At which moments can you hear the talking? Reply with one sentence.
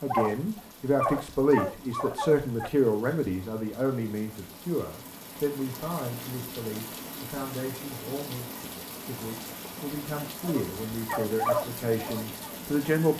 You can hear the talking from 0.0 to 13.1 s.